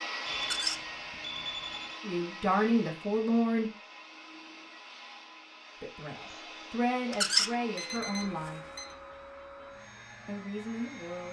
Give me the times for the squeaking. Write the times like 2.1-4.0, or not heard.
0.4-0.8, 7.1-7.5.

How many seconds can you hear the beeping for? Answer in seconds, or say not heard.
3 s.